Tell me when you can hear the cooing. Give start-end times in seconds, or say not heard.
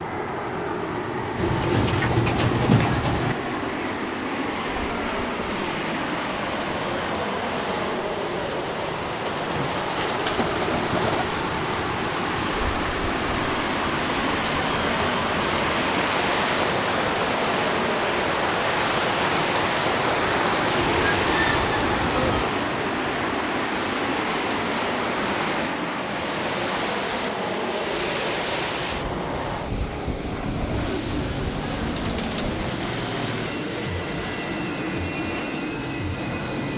1.4-3.4, 9.2-11.2, 20.7-22.6, 30.9-32.6.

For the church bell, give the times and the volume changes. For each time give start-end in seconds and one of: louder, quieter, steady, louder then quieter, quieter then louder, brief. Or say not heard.
not heard.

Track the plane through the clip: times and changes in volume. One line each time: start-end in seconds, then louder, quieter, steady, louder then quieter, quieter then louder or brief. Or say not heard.
0.0-36.7 steady.